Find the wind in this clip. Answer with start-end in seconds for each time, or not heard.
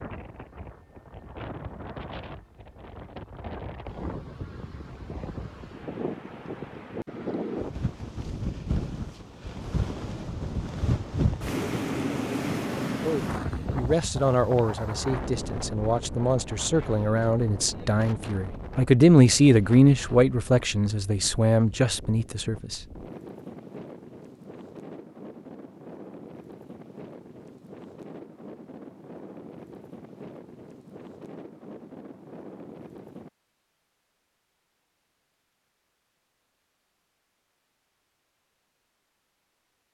0.0-33.3.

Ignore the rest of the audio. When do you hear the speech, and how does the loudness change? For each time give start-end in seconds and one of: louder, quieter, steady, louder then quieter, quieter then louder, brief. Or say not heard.
12.9-22.9 louder then quieter.